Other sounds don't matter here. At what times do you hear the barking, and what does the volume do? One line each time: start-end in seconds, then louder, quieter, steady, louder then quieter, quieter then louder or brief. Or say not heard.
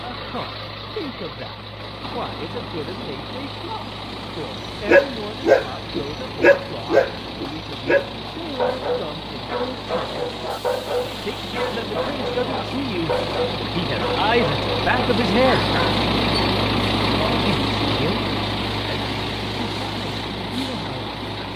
4.8-16.0 quieter.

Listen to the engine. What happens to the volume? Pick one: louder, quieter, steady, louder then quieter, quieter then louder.
louder.